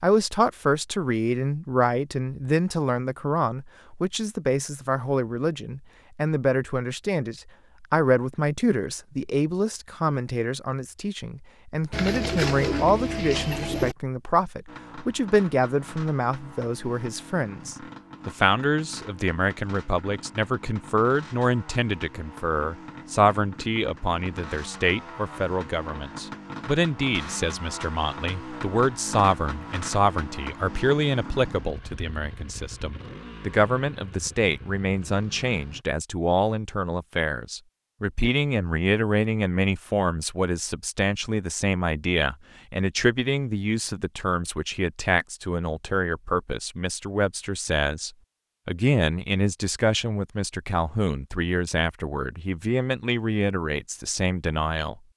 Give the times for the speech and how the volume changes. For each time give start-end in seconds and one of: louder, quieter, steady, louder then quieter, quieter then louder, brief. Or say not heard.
0.0-55.0 steady.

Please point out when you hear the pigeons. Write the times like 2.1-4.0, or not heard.
11.9-13.9.